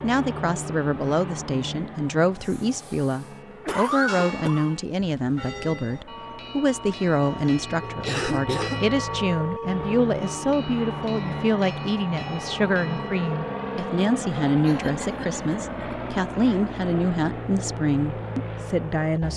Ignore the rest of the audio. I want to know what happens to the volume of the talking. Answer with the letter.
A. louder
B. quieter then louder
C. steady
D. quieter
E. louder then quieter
C.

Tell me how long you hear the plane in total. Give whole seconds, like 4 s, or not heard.
19 s.